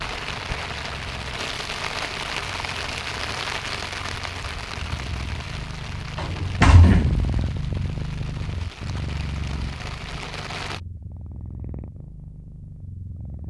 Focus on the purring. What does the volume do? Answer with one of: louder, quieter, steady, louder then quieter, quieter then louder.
louder then quieter.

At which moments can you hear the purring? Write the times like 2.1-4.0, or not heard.
0.0-13.4.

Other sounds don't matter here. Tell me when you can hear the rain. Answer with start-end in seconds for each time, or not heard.
0.0-10.8.